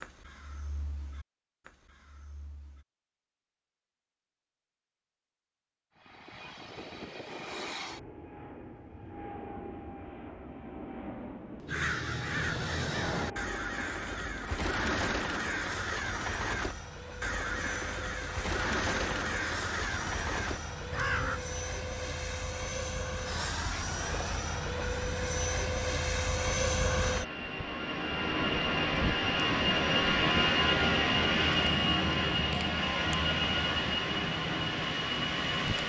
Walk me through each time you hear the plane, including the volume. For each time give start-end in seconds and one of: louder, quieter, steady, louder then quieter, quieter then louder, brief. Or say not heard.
6.0-35.8 louder.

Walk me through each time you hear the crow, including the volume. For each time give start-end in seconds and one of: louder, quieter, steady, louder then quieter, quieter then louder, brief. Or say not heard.
0.0-2.9 brief
11.7-21.4 steady.